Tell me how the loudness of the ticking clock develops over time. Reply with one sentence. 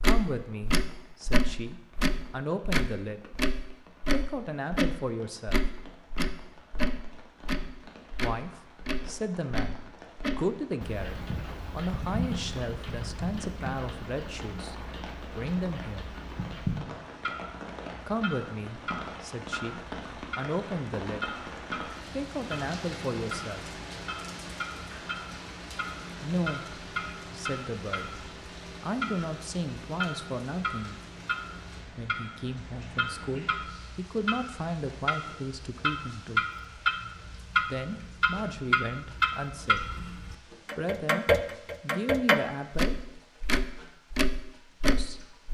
The volume of the ticking clock goes down, then up.